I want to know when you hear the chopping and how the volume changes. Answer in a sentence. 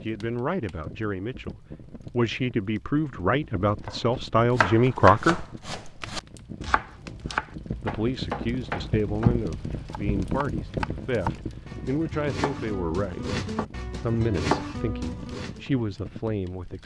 You can hear the chopping from 3.9 to 15.6 s, getting quieter then louder.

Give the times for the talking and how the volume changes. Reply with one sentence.
The talking can be heard from 0.0 to 5.5 s, getting louder; from 7.8 to 13.3 s, at a steady volume; and briefly from 14.0 to 16.8 s.